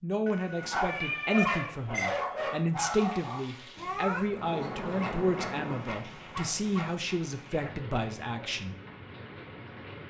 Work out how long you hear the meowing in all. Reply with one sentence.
You can hear the meowing for 2 seconds altogether.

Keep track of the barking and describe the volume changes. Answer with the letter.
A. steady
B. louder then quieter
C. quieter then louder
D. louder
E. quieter
E.